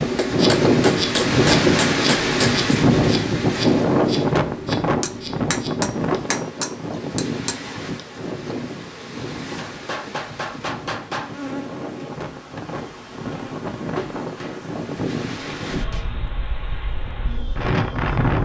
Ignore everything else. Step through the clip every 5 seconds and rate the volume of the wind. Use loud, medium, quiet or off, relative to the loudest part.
loud, medium, quiet, medium.